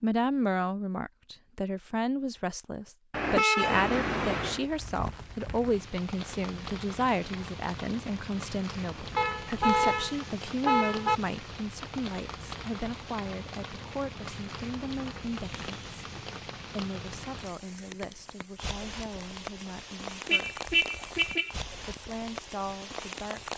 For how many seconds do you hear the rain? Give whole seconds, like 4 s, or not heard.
19 s.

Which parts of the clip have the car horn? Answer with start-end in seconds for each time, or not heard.
3.1-4.6, 9.2-11.2, 20.2-21.6.